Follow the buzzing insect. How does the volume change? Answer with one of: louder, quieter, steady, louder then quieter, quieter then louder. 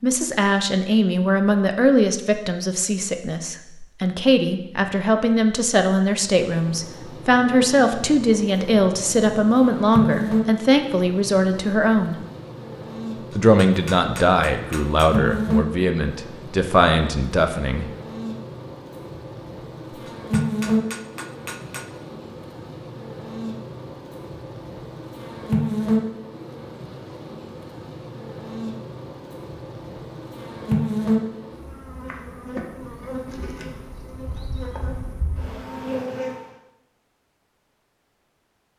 steady.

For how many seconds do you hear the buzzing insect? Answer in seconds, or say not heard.
30 s.